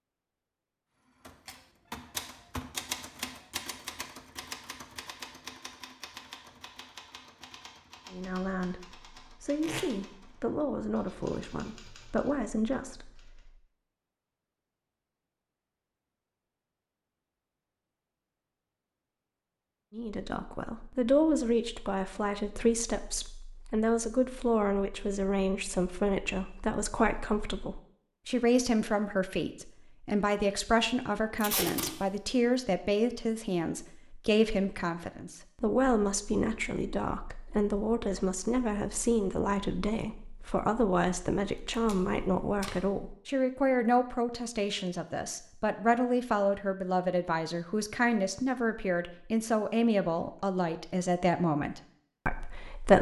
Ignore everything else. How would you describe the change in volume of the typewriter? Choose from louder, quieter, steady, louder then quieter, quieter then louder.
quieter.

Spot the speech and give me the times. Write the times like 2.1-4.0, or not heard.
8.1-13.5, 19.9-52.9.